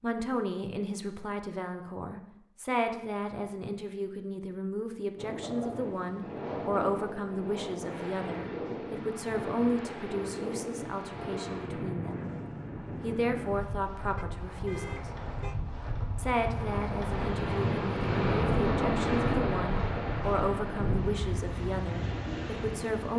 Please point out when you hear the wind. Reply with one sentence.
You can hear the wind from 5.2 to 23.1 s.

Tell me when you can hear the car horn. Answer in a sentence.
You can hear the car horn from 14.2 to 15.6 s.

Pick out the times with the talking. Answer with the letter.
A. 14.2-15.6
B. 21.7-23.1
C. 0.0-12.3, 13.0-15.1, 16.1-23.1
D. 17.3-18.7
C.